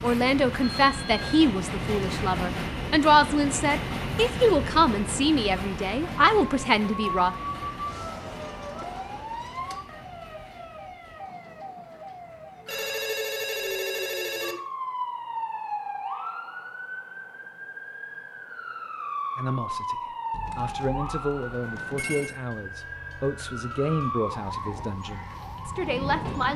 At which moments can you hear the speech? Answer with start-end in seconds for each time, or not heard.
0.0-7.3, 19.4-26.5.